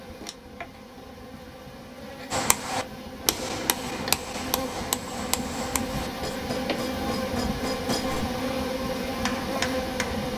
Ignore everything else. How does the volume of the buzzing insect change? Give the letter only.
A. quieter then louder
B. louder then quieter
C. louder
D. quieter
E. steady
C.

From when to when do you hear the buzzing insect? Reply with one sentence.
You can hear the buzzing insect from 0.0 to 10.3 s.